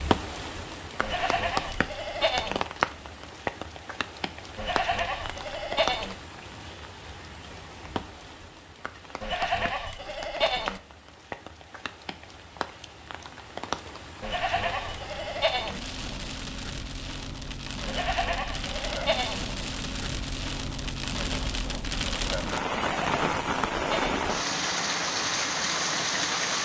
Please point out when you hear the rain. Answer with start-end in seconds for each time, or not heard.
0.0-26.6.